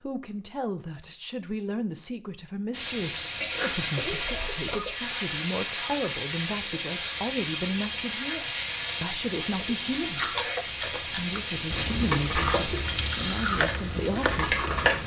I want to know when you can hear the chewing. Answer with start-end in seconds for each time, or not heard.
9.6-15.0.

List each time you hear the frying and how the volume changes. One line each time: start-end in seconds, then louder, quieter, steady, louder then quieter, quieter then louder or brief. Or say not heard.
2.7-15.0 steady.